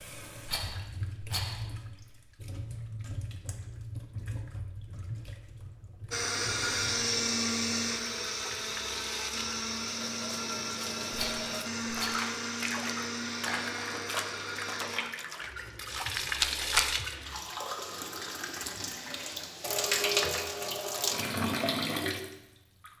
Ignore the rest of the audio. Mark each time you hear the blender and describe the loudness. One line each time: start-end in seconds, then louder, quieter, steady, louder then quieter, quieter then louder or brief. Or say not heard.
6.1-15.0 quieter.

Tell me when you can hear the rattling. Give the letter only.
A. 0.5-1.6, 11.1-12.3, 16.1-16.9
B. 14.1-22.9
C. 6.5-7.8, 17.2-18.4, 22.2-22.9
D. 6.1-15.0
A.